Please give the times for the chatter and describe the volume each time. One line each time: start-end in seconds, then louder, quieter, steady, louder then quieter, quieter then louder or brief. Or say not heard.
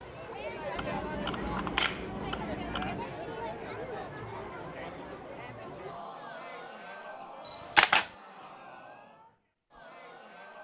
0.0-10.5 quieter.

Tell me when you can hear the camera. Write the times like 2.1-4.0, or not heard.
0.8-3.0, 7.5-8.1.